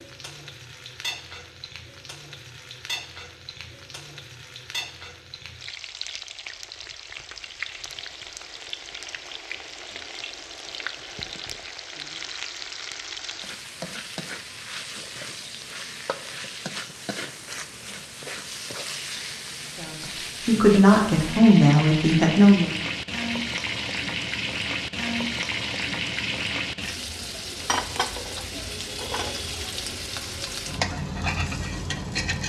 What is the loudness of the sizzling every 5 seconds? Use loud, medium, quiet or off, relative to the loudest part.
medium, medium, medium, medium, loud, loud, loud.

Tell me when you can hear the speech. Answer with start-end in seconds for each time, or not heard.
19.8-22.7.